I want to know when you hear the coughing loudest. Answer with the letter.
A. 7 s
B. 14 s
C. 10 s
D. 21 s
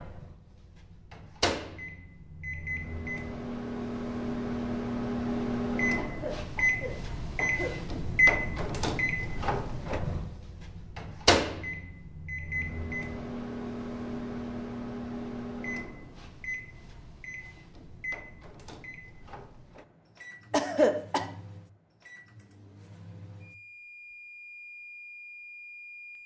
D.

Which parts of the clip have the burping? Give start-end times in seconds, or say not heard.
not heard.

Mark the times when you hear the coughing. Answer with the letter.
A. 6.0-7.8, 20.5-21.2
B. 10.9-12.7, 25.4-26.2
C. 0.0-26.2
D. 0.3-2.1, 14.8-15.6
A.